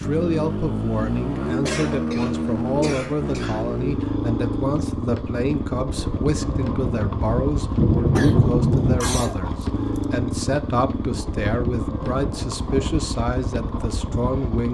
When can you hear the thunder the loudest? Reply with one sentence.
The volume of the thunder peaks at 8 seconds.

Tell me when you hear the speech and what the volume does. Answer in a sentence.
The speech can be heard from 0.0 to 14.6 s, at a steady volume.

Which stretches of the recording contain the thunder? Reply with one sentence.
The thunder can be heard from 6.4 to 9.2 s.